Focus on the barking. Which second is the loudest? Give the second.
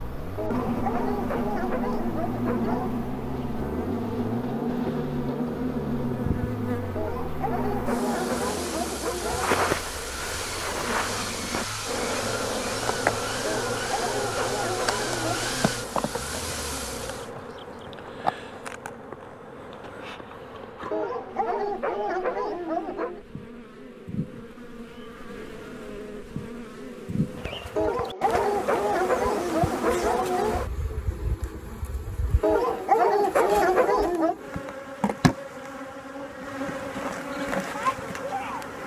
33 s.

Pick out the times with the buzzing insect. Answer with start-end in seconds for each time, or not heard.
0.0-38.8.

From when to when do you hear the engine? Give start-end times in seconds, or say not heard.
0.0-17.3.